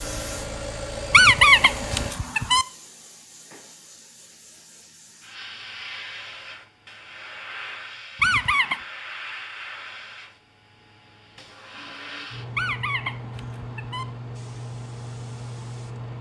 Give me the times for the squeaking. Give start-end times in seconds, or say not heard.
1.1-2.6, 8.2-8.8, 12.6-14.1.